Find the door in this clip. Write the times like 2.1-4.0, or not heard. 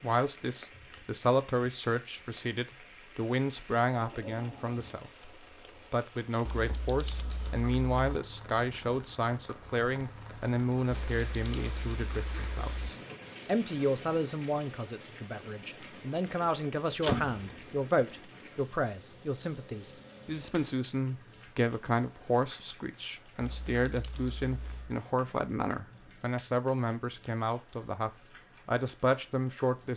16.4-17.6.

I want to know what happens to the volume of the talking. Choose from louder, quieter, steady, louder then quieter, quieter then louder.
steady.